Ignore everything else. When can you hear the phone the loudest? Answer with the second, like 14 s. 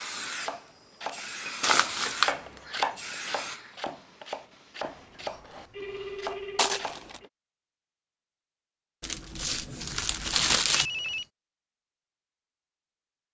11 s.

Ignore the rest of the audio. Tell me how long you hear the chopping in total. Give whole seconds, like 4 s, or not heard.
7 s.